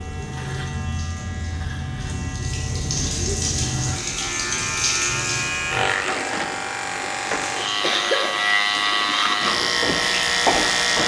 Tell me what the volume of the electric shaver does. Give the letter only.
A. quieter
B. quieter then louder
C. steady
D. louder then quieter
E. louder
E.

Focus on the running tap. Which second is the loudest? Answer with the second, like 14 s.
5 s.